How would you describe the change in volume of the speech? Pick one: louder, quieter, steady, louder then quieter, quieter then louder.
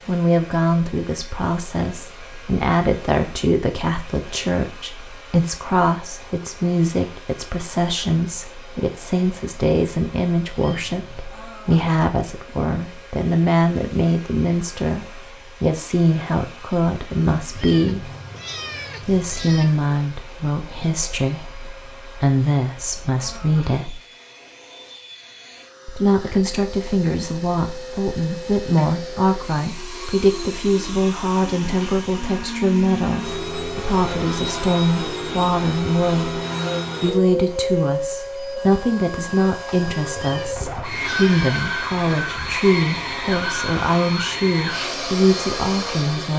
steady.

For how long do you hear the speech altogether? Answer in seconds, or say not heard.
43 s.